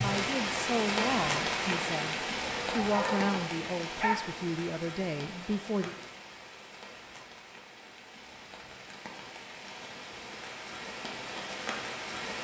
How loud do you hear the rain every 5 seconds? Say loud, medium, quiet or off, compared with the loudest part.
loud, quiet, medium.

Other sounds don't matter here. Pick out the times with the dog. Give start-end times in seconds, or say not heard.
2.4-4.3.